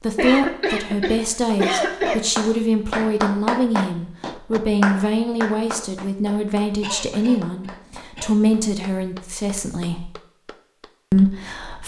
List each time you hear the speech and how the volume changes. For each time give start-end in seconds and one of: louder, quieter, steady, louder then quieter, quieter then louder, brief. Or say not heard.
0.0-10.1 steady
11.1-11.8 brief.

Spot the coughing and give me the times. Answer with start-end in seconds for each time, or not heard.
0.1-2.2, 6.8-8.3.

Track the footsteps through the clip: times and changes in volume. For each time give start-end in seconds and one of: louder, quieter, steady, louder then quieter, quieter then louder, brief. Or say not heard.
not heard.